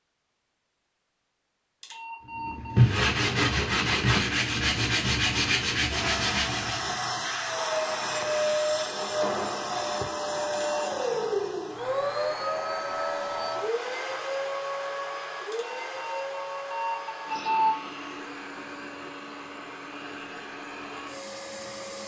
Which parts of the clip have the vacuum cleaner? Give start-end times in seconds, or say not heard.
5.9-22.0.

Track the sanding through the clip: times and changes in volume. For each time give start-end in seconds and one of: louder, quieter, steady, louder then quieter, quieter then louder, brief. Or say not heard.
2.3-7.0 quieter.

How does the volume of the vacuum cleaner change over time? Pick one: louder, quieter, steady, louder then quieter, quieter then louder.
quieter.